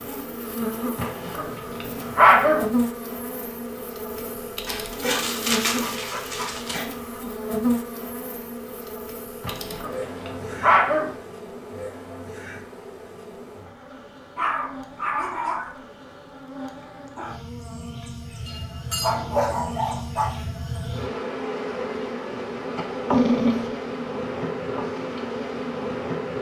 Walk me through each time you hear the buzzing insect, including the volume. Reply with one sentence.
You can hear the buzzing insect from 0.0 to 26.3 s, getting quieter then louder.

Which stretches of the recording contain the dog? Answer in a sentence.
The dog can be heard from 0.9 to 2.6 s, from 4.7 to 6.8 s, from 9.4 to 11.1 s, from 14.3 to 15.7 s, from 18.4 to 20.3 s and from 23.1 to 23.7 s.